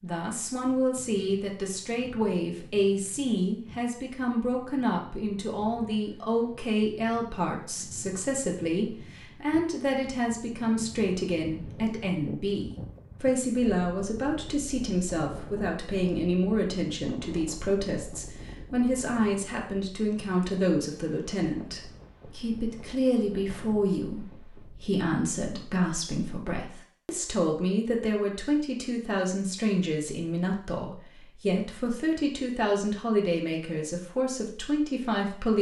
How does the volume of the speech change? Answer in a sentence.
The volume of the speech stays about the same.